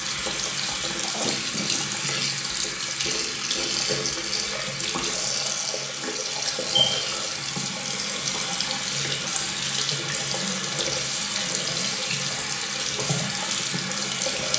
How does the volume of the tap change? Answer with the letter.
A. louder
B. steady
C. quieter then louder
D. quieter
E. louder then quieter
B.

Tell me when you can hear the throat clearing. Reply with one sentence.
The throat clearing can be heard from 1.0 to 2.0 s.